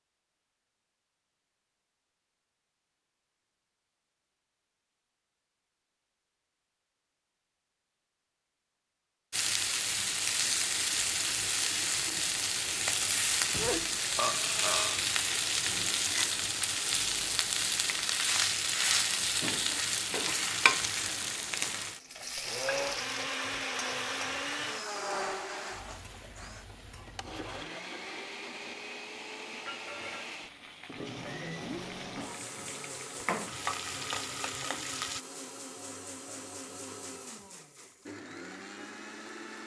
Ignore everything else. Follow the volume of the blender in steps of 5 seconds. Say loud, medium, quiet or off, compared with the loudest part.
off, off, off, off, loud, medium, medium, medium.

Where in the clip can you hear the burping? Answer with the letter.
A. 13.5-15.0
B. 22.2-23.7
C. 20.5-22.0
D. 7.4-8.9
A.